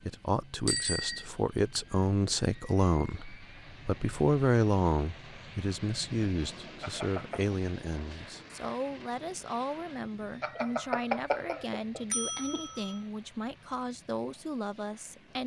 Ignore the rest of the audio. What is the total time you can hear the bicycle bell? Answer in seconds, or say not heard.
4 s.